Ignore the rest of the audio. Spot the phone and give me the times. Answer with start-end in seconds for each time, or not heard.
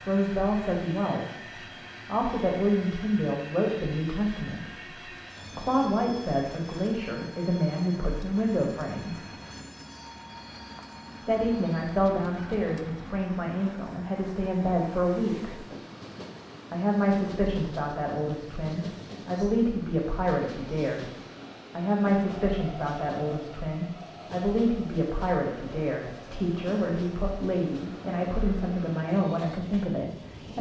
not heard.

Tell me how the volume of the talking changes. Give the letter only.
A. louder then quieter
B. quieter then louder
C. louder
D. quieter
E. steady
E.